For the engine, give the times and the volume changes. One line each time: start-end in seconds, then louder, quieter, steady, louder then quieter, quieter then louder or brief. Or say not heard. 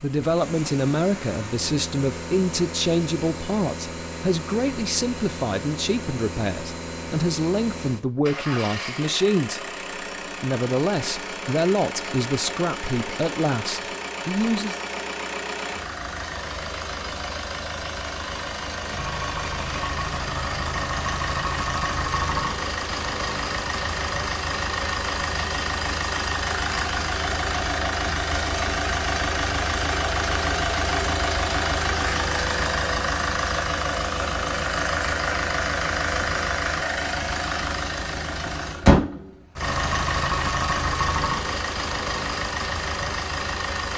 0.0-43.9 louder.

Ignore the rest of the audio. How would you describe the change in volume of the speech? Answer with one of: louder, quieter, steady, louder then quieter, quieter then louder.
steady.